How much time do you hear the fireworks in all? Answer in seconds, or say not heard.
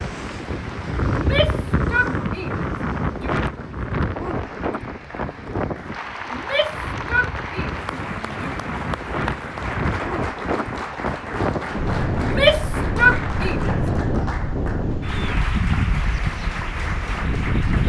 not heard.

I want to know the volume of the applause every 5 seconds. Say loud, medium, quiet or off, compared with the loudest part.
medium, loud, loud, loud.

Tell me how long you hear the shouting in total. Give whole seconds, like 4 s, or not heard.
6 s.